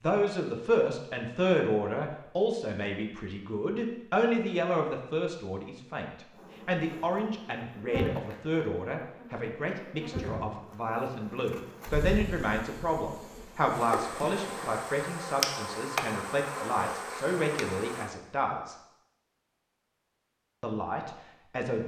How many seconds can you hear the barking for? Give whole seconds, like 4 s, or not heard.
not heard.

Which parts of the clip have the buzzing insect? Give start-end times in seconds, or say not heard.
6.3-18.1.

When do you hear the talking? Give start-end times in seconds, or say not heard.
0.0-18.8, 20.6-21.8.